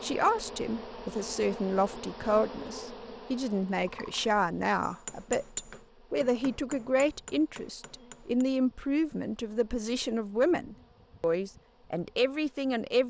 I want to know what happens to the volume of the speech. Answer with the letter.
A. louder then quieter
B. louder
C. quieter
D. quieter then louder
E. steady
E.